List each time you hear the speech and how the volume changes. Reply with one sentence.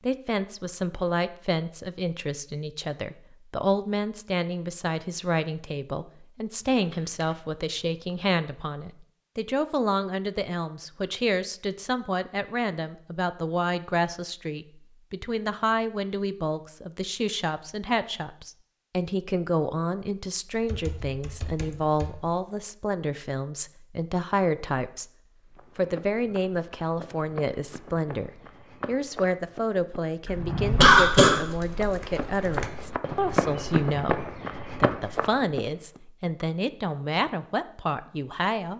The speech can be heard from 0.0 to 38.7 s, at a steady volume.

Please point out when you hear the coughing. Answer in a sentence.
You can hear the coughing from 30.2 to 31.4 s.